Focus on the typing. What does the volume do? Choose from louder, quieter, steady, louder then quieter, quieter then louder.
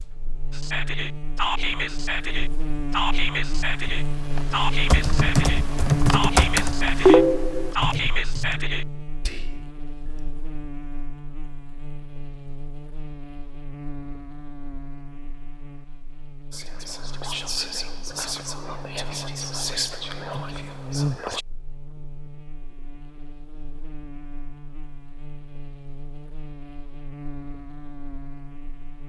louder then quieter.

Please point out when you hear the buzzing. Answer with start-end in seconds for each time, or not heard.
0.0-29.0.